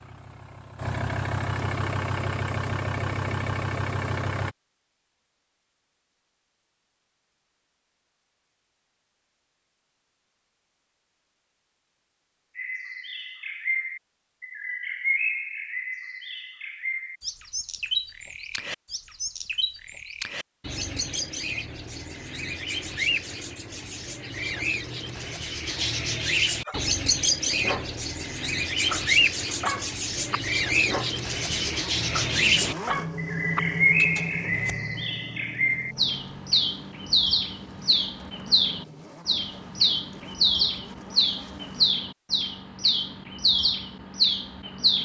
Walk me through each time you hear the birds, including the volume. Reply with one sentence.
The birds can be heard from 12.6 to 45.0 s, getting louder.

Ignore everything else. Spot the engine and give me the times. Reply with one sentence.
You can hear the engine from 0.0 to 4.5 s and from 31.4 to 42.0 s.